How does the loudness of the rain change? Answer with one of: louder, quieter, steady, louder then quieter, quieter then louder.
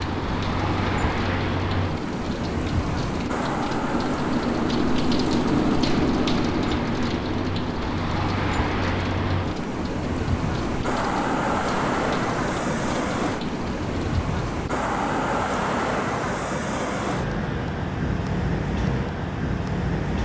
louder then quieter.